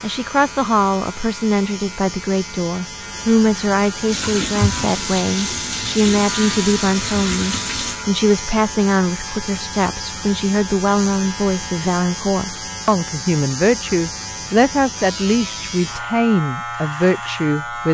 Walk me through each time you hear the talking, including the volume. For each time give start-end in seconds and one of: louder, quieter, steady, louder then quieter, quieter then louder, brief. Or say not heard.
0.0-17.8 steady.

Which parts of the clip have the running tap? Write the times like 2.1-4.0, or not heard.
4.0-8.0.